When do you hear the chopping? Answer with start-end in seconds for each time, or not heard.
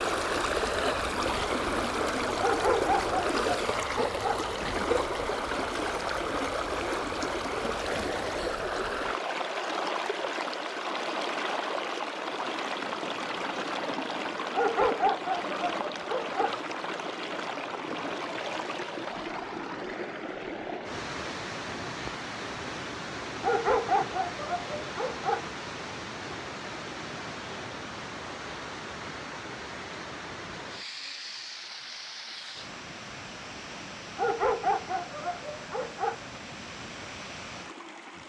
not heard.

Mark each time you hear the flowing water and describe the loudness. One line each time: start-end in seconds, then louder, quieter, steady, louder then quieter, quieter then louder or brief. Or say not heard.
0.0-38.2 quieter.